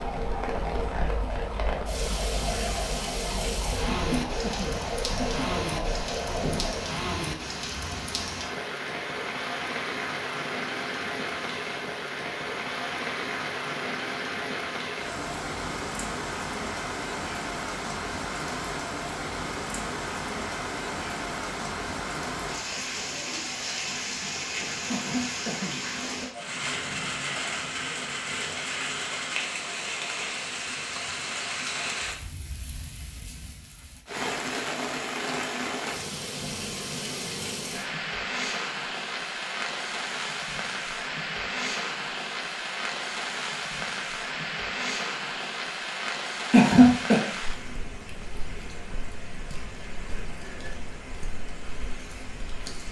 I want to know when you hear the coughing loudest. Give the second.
47 s.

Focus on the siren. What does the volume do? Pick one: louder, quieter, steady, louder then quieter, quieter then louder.
steady.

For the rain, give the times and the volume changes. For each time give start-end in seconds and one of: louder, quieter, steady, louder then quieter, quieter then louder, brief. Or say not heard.
0.0-52.8 steady.